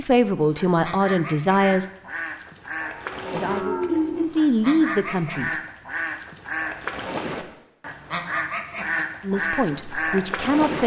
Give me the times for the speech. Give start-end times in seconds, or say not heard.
0.0-1.9, 3.3-5.5, 9.2-10.8.